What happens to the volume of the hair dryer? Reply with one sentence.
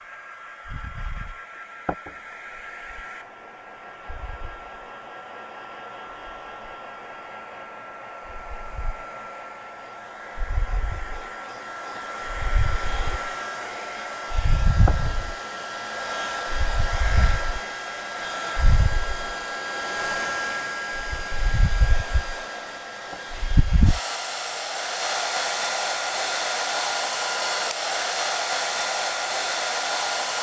The loudness of the hair dryer goes up.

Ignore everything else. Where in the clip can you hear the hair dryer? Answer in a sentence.
The hair dryer can be heard from 0.0 to 30.3 s.